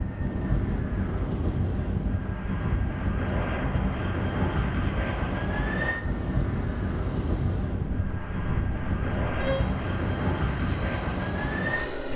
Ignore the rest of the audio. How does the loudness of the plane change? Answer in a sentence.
The volume of the plane stays about the same.